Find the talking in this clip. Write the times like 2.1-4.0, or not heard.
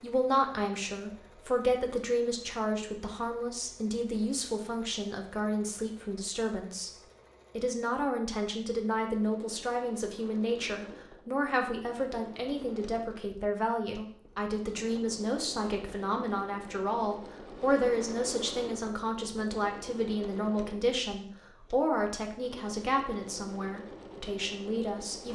0.0-25.3.